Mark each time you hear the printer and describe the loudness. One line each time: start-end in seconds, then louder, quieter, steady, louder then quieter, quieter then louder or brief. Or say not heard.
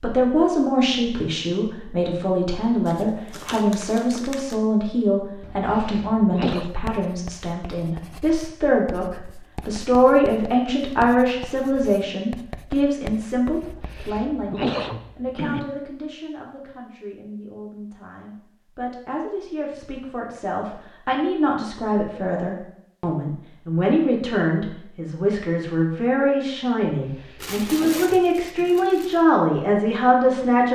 not heard.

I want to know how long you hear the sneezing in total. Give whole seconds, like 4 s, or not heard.
5 s.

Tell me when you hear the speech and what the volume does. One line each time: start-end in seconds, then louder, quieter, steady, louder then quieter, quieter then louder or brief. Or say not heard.
0.0-30.7 quieter then louder.